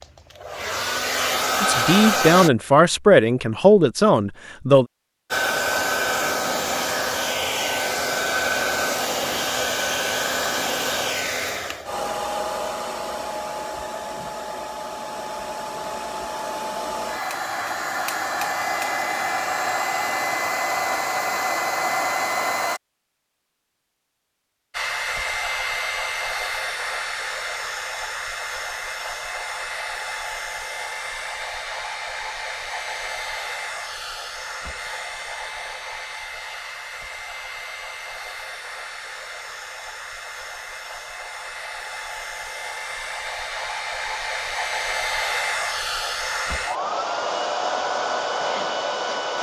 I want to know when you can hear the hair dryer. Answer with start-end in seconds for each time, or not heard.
0.0-2.5, 5.3-22.8, 24.7-49.3.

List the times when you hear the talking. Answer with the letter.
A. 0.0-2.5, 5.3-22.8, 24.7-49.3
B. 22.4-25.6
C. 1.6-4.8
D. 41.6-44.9
C.